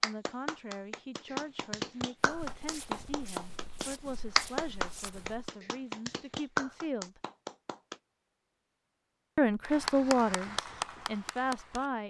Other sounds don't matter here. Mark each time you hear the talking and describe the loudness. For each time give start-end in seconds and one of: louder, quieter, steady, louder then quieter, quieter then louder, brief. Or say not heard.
0.0-7.2 steady
9.3-12.0 brief.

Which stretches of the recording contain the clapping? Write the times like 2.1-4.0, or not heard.
0.0-8.0, 9.7-11.9.